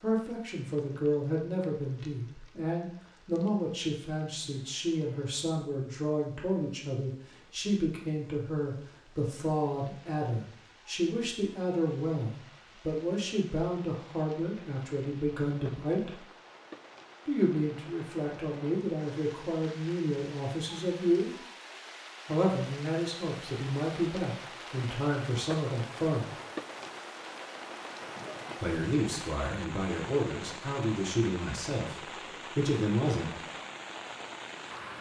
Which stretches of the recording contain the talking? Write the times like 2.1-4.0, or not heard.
0.0-16.2, 17.2-21.4, 22.2-26.3, 28.6-33.4.